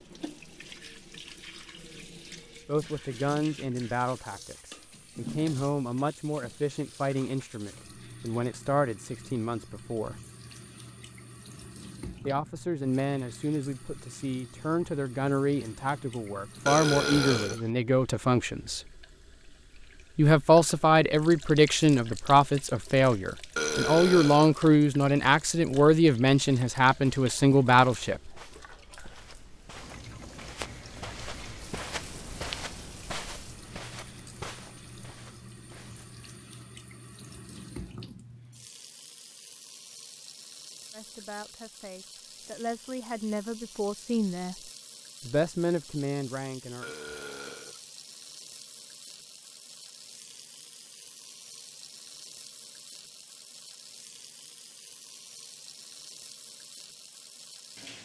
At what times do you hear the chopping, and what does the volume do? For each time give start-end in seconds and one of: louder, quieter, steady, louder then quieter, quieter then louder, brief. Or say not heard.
not heard.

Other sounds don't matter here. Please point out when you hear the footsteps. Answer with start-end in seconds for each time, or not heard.
26.9-36.3.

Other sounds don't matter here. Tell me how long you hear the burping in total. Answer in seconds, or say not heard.
3 s.